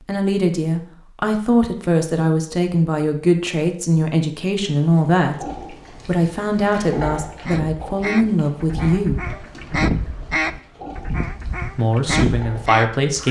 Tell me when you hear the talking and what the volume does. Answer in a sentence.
You can hear the talking from 0.1 to 9.2 s, at a steady volume; and briefly from 11.8 to 13.2 s.